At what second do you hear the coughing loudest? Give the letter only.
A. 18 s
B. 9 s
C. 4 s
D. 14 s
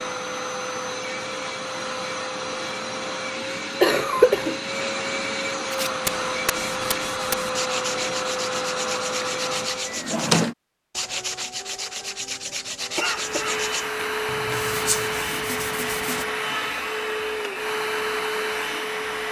C.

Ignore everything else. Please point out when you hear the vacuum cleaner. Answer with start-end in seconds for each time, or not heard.
0.0-10.2, 12.9-19.2.